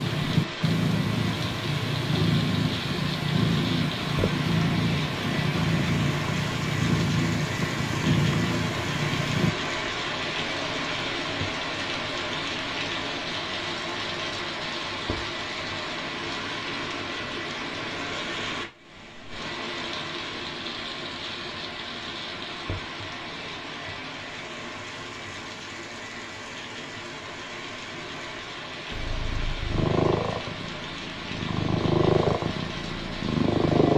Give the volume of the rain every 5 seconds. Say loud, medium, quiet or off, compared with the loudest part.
loud, loud, loud, loud, medium, medium, medium.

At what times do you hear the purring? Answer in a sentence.
You can hear the purring from 0.0 to 9.5 s and from 28.9 to 33.9 s.